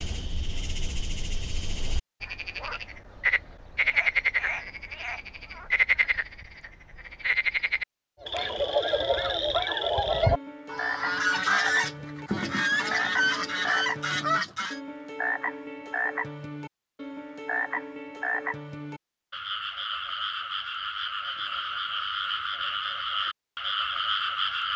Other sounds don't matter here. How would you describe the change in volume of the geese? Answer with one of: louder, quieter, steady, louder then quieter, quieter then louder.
steady.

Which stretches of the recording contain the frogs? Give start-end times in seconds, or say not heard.
0.0-24.7.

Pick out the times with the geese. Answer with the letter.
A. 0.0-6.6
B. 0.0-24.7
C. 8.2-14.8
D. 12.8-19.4
C.